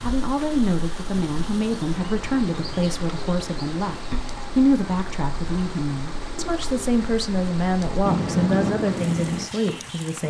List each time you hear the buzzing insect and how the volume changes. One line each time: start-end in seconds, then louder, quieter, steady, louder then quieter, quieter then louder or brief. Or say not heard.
not heard.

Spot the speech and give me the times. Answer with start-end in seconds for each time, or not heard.
0.0-10.2.